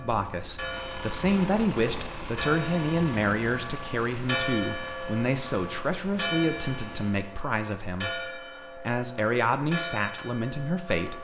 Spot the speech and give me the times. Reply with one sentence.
You can hear the speech from 0.0 to 11.1 s.